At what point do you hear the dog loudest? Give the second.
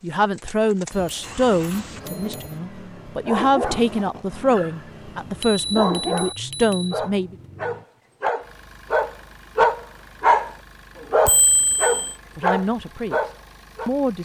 10 s.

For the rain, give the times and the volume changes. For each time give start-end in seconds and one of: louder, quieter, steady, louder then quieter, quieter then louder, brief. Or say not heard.
not heard.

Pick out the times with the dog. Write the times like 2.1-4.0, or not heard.
3.2-10.5, 11.1-13.9.